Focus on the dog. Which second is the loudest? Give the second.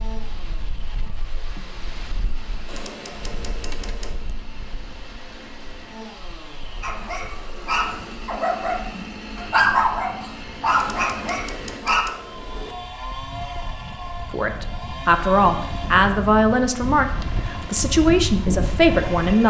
10 s.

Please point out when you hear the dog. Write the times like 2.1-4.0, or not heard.
6.8-12.1.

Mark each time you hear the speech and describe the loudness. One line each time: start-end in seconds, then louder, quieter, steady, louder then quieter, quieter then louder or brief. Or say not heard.
14.3-19.4 steady.